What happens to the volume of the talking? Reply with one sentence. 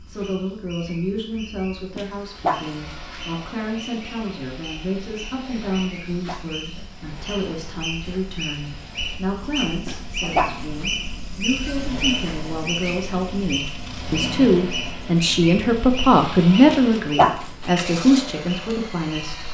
The volume of the talking goes up.